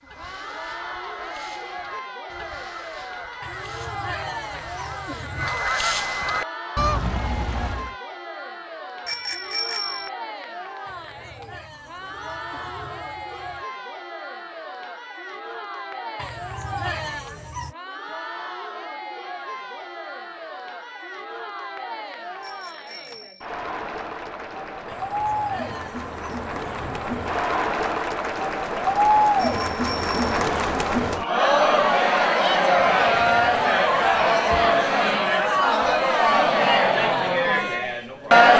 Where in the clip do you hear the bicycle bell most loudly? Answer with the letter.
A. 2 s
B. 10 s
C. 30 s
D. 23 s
B.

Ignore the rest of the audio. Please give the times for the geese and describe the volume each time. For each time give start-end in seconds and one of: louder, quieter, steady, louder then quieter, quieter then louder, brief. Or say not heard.
0.0-8.0 louder.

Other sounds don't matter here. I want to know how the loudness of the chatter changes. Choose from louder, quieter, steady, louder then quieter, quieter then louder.
louder.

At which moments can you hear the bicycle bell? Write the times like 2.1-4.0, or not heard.
9.1-10.1, 22.4-23.4, 29.4-30.2.